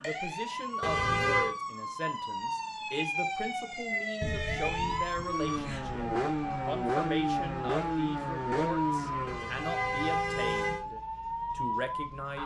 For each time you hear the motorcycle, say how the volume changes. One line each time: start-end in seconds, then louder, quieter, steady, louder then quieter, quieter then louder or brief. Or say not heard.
5.2-9.5 steady.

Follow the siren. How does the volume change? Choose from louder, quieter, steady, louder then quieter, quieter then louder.
steady.